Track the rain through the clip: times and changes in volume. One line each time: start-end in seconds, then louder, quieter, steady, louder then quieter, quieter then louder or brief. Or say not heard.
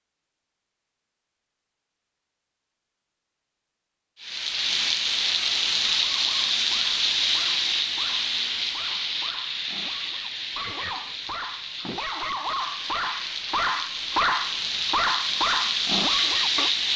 4.2-16.9 quieter then louder.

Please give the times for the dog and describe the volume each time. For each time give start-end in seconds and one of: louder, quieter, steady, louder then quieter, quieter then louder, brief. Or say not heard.
5.8-16.7 louder.